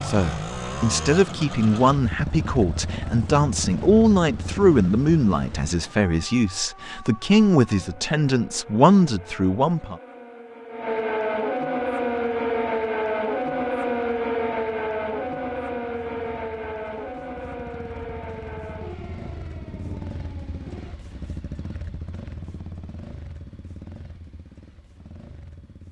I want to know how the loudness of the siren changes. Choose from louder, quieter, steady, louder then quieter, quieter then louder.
louder then quieter.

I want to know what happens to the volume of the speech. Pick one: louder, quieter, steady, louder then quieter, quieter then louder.
steady.